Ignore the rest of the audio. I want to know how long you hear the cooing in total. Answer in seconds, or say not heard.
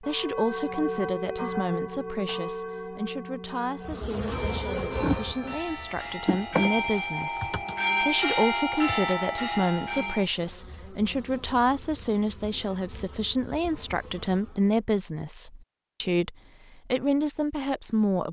not heard.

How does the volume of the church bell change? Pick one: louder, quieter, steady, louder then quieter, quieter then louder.
quieter then louder.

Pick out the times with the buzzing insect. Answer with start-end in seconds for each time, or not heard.
3.8-14.8.